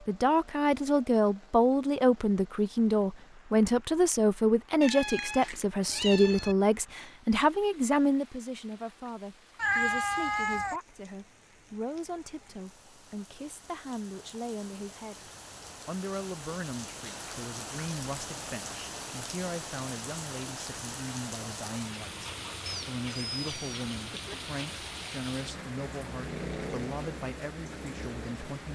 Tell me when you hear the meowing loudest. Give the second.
10 s.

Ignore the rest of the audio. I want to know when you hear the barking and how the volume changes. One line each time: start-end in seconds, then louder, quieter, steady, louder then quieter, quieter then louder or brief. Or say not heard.
not heard.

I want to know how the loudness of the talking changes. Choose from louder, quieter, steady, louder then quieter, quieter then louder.
quieter.